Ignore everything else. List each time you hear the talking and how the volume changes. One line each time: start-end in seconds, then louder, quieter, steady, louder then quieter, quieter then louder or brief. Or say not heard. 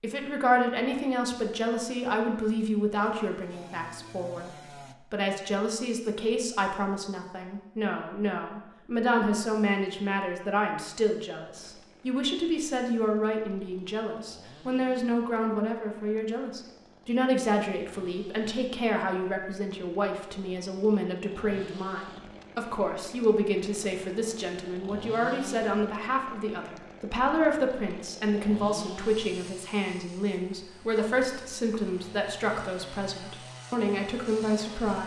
0.0-35.0 steady.